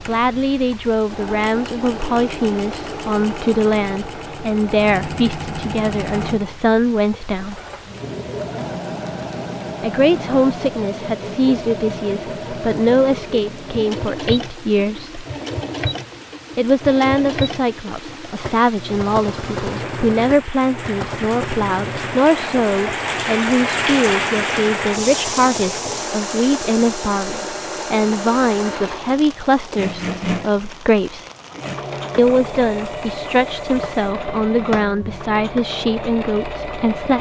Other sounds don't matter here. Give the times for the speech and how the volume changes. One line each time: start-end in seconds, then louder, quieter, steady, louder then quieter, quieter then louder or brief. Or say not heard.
0.1-7.6 steady
9.8-15.2 steady
16.6-31.3 steady
32.1-37.1 steady.